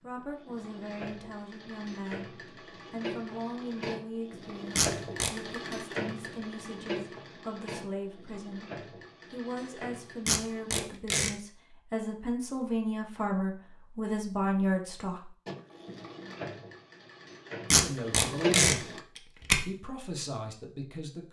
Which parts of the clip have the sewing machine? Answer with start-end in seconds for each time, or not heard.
0.0-10.8, 15.4-19.0.